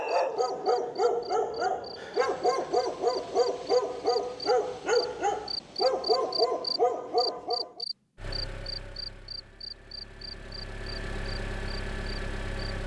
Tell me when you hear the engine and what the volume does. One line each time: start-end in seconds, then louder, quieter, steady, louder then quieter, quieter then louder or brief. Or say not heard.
8.2-12.8 quieter then louder.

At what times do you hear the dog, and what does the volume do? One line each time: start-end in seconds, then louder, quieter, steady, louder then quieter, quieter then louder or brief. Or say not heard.
0.0-7.8 steady.